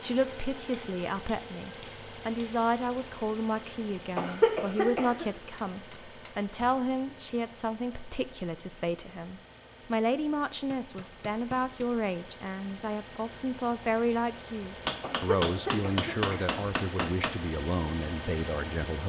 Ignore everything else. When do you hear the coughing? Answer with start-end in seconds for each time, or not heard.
4.2-5.2, 15.0-16.4.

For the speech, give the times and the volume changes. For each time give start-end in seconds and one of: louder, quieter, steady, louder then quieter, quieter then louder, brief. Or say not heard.
0.0-19.0 steady.